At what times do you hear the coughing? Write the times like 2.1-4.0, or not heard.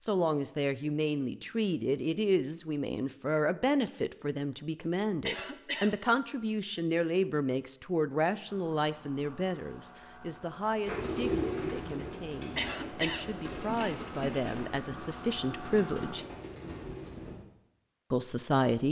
5.2-6.0, 12.6-13.2.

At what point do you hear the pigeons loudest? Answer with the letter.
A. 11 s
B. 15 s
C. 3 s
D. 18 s
A.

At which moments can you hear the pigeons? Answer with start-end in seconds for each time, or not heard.
10.8-17.4.